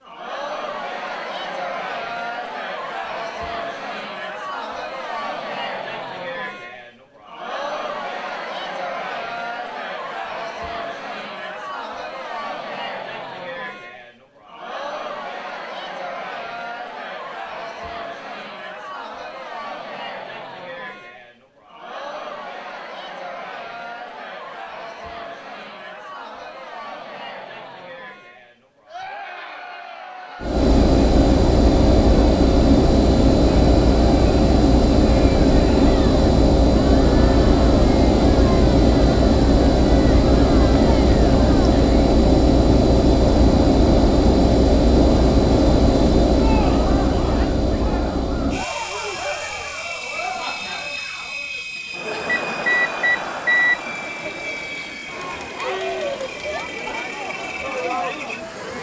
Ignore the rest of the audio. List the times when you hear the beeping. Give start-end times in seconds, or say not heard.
52.2-53.8.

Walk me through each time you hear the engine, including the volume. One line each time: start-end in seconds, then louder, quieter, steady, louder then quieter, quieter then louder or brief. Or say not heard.
30.4-58.7 quieter.